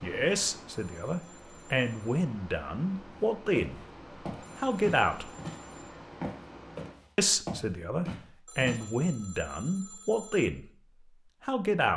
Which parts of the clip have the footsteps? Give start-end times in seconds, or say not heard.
3.5-8.8.